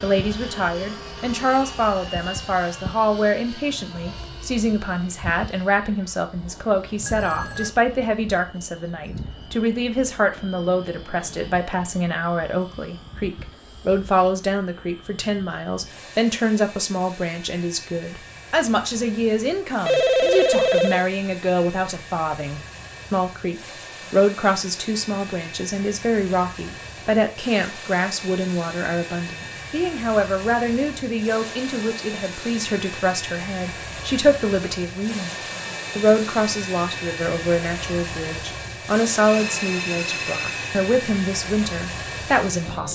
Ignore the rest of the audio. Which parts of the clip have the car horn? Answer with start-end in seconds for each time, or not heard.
not heard.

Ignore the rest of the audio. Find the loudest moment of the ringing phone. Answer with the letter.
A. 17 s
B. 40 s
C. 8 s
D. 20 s
D.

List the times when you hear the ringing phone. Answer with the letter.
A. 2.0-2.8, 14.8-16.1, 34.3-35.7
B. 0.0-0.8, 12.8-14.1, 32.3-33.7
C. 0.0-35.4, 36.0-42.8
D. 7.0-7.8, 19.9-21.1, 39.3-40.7
D.